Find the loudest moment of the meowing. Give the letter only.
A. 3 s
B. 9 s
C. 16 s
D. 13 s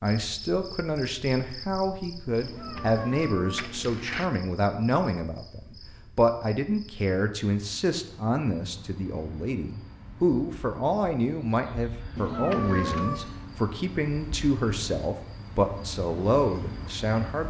D.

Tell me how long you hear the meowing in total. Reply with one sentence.
The meowing can be heard for 3 seconds in total.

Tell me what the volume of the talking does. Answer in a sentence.
The loudness of the talking stays about the same.